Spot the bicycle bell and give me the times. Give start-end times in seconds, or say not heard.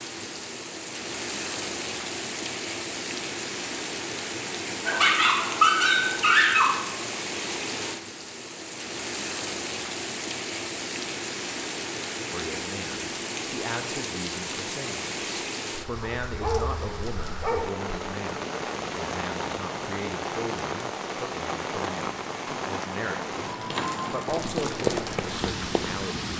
not heard.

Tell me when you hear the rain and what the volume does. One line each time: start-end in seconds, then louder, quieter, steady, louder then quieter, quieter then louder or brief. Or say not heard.
0.0-26.3 steady.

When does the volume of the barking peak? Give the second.
6 s.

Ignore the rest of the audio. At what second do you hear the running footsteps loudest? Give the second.
25 s.